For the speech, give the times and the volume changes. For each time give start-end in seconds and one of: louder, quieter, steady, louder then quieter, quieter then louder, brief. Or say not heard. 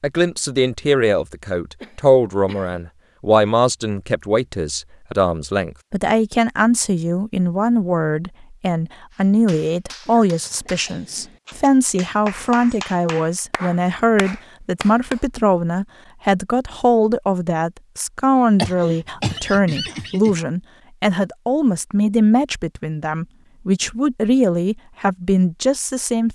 0.0-26.2 steady.